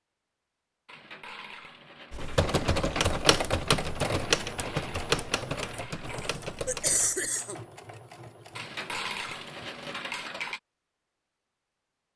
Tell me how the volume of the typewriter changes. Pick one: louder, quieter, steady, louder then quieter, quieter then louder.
quieter.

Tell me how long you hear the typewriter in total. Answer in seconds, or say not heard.
5 s.